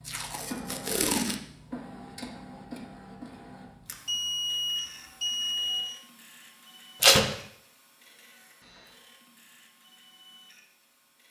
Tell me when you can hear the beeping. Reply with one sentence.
You can hear the beeping from 4.0 to 5.9 s.